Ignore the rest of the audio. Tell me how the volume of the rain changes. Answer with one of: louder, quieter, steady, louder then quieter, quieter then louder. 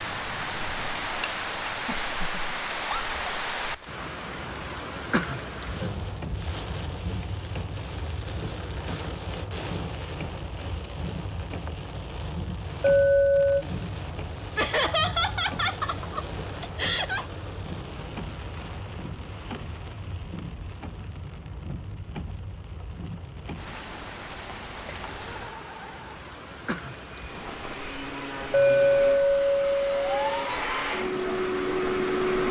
quieter.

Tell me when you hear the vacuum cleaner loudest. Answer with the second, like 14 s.
32 s.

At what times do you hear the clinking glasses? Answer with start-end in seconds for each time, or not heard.
12.8-13.7, 28.5-30.5.